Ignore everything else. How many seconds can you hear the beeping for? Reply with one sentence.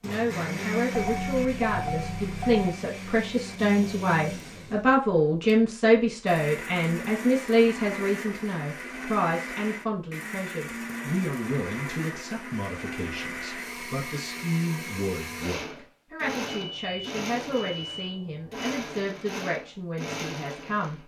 The beeping can be heard for 4 seconds in total.